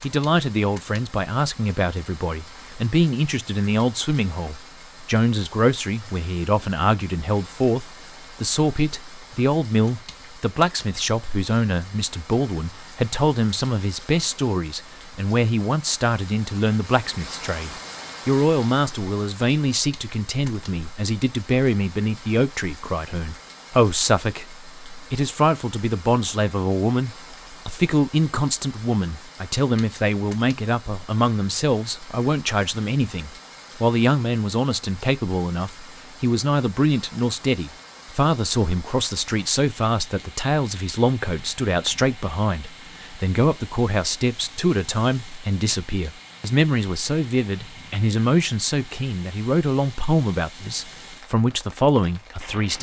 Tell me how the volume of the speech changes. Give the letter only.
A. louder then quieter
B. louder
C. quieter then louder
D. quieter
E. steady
E.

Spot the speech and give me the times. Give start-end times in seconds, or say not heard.
0.0-52.7.